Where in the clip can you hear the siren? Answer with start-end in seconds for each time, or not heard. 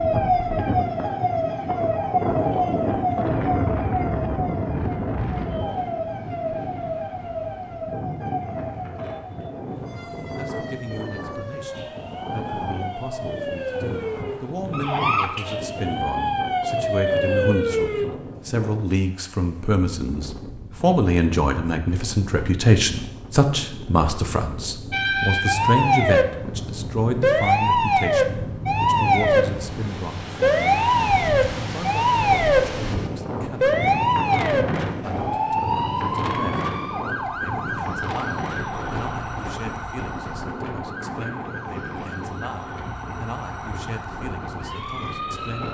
0.0-18.1, 24.9-45.6.